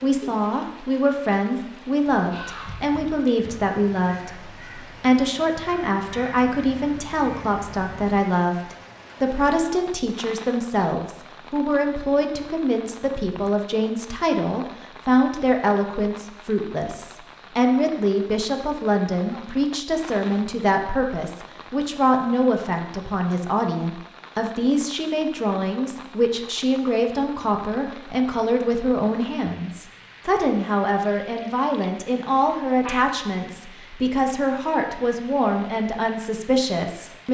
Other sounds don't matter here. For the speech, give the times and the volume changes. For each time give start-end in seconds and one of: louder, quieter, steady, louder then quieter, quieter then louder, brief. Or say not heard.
0.0-37.3 steady.